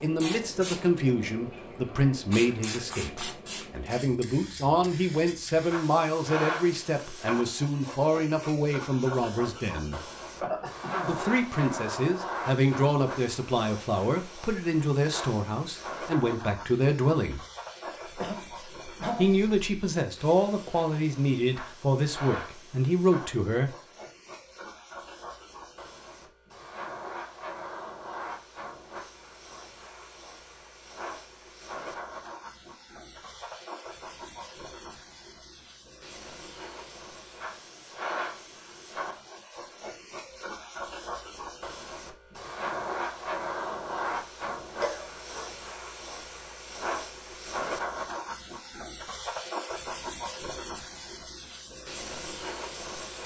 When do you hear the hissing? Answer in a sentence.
The hissing can be heard from 0.0 to 53.2 s.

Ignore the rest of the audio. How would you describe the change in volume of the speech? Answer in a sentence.
The loudness of the speech stays about the same.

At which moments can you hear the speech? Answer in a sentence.
You can hear the speech from 0.0 to 10.0 s, from 11.1 to 17.4 s and from 19.1 to 23.8 s.